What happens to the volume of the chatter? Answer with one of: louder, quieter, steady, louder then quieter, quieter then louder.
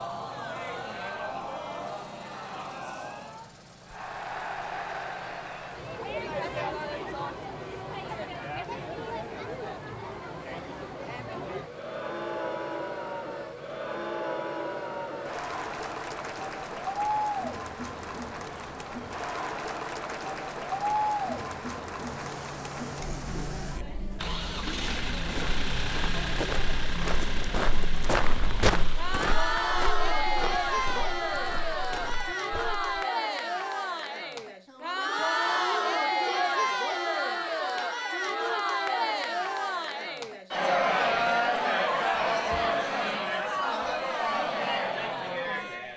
louder.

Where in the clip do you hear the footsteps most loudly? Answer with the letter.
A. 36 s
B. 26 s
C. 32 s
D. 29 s
D.